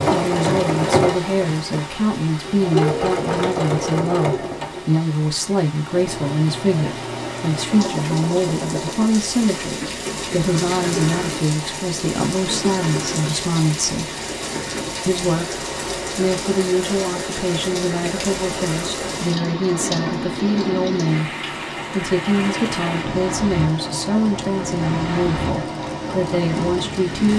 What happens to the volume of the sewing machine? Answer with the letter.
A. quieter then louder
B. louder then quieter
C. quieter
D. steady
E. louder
C.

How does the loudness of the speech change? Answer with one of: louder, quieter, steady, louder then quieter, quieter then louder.
steady.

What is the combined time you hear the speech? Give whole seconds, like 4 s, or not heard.
26 s.